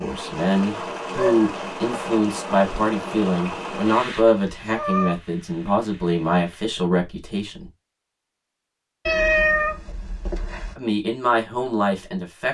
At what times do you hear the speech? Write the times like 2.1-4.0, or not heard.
0.0-7.7, 10.8-12.4.